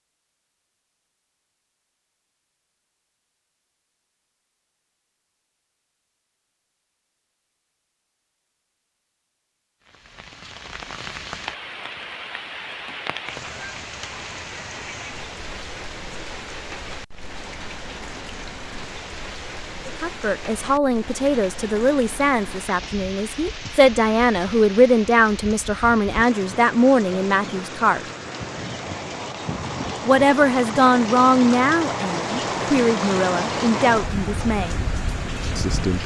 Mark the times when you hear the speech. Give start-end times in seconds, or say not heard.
19.9-28.0, 30.1-34.8, 35.5-36.0.